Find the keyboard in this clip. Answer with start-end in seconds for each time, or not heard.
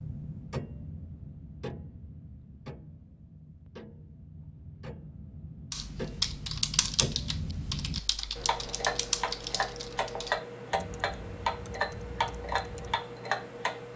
5.7-13.1.